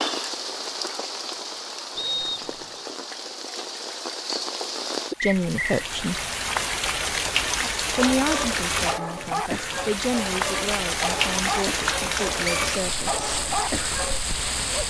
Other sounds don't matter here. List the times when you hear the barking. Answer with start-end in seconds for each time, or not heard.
7.5-14.8.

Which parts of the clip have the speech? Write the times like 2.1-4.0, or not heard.
5.2-6.2, 8.0-13.2.